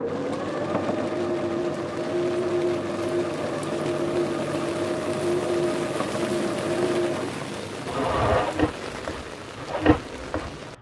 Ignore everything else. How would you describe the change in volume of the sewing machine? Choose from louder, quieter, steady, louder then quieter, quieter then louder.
steady.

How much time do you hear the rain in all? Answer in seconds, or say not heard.
11 s.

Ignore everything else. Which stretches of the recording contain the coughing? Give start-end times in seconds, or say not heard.
not heard.